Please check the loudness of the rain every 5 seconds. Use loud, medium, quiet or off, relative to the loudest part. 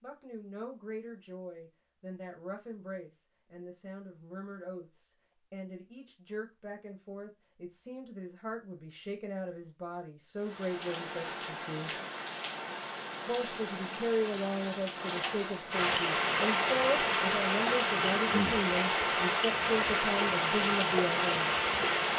off, off, medium, loud, loud.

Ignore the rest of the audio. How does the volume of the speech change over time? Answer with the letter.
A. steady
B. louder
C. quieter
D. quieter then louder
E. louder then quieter
B.